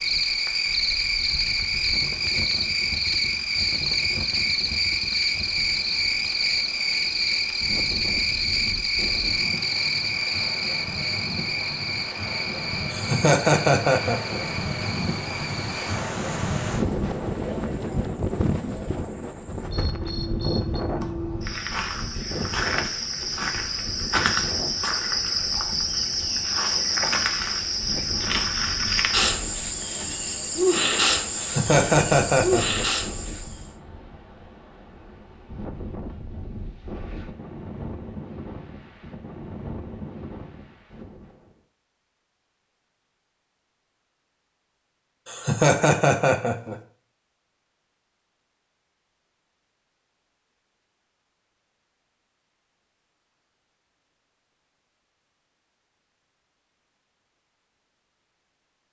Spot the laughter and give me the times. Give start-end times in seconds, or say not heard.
12.9-14.4, 31.4-32.9, 45.2-46.8.